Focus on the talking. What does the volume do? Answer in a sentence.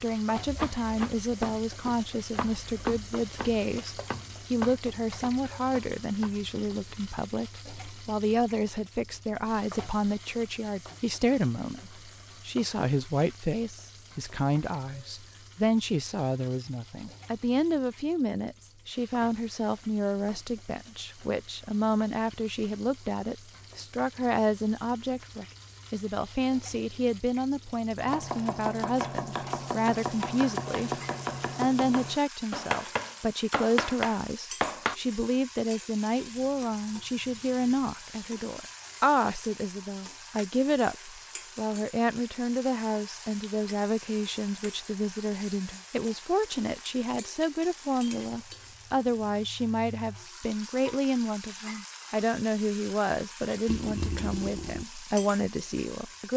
The loudness of the talking stays about the same.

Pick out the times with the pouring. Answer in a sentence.
You can hear the pouring from 53.6 to 54.9 s.